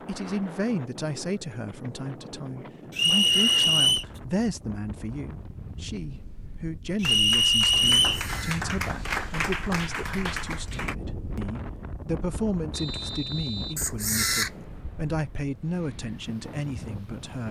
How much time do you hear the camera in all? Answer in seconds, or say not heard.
3 s.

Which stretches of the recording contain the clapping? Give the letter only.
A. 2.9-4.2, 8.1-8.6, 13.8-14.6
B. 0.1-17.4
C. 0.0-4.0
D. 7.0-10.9
D.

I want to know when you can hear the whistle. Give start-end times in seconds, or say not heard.
3.0-4.0, 7.0-8.2, 12.7-13.8.